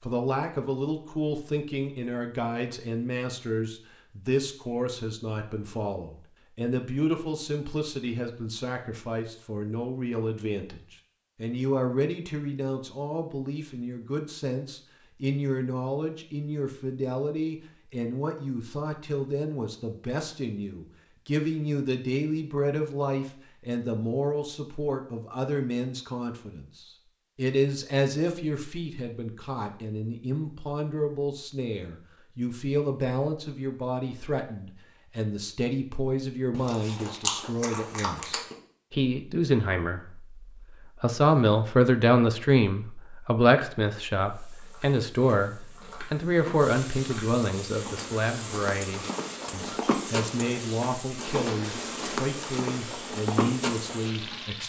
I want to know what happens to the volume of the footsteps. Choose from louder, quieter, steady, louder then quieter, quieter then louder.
louder.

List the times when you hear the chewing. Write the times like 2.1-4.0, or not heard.
36.5-38.5.